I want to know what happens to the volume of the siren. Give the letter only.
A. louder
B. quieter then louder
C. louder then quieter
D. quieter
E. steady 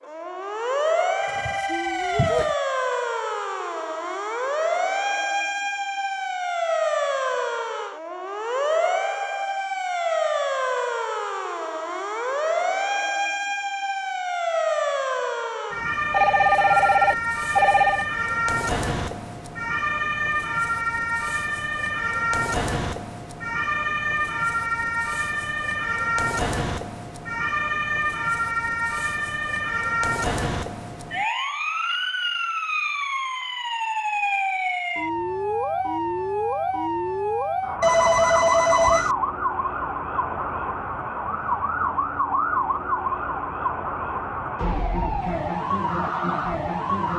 E.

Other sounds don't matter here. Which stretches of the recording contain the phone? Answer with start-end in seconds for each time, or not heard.
1.2-2.5, 16.1-18.1, 37.8-39.1.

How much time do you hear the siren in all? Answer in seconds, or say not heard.
47 s.